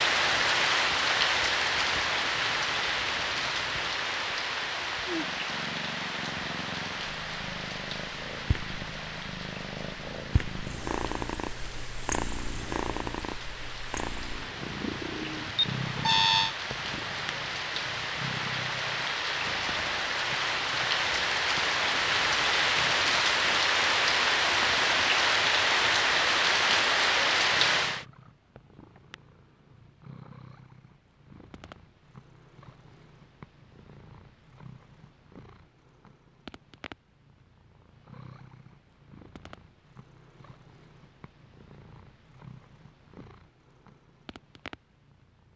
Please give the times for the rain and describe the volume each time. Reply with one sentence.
You can hear the rain from 0.0 to 28.1 s, getting quieter then louder.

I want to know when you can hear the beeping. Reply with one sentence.
You can hear the beeping from 15.2 to 16.6 s.